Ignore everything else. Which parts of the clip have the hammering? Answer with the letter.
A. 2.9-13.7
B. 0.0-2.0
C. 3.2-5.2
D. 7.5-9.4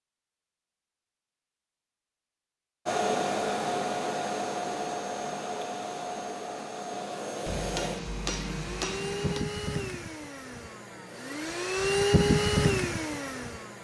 D.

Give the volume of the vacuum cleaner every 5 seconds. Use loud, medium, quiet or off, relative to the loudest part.
loud, medium, loud.